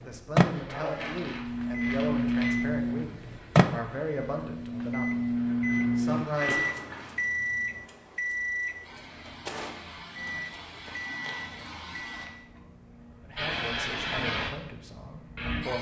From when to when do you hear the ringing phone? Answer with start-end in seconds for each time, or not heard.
not heard.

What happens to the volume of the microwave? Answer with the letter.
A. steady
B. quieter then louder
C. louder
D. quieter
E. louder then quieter
D.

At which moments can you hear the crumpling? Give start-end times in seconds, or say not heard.
0.7-2.5, 6.0-7.2, 10.8-12.3.